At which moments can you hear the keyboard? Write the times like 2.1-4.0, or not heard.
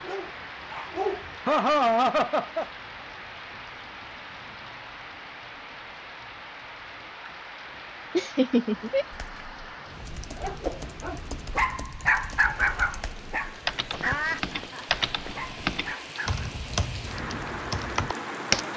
9.1-18.6.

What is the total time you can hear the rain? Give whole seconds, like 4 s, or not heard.
19 s.